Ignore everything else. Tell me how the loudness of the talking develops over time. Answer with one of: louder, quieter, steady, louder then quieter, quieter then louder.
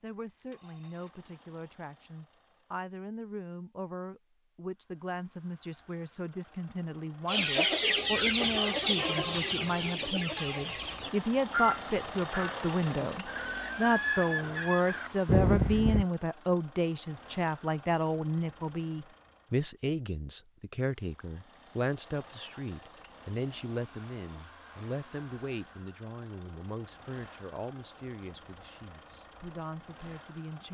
louder then quieter.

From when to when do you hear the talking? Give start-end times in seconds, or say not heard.
0.0-30.6.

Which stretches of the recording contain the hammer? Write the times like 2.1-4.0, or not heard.
not heard.